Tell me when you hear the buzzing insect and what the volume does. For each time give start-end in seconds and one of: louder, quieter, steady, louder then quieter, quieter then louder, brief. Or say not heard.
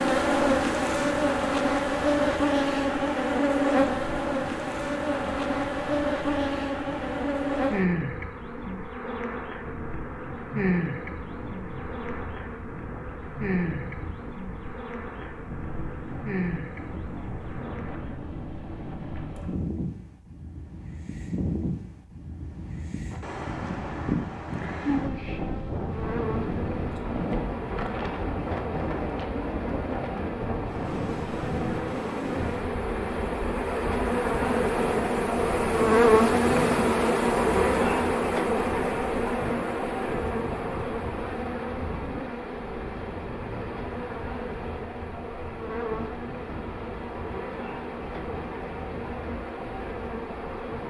0.0-18.2 quieter
24.7-50.8 louder then quieter.